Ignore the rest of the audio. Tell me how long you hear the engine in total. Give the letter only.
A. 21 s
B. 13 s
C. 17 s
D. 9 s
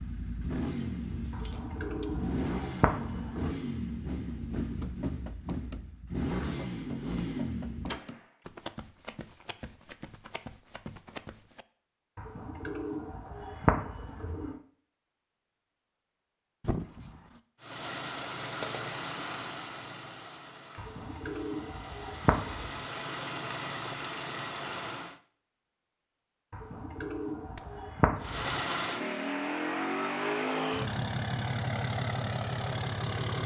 A.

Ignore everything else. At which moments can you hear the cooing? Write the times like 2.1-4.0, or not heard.
1.3-3.5, 12.2-14.6, 20.8-22.9, 26.5-28.6.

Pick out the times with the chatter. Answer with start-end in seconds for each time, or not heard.
not heard.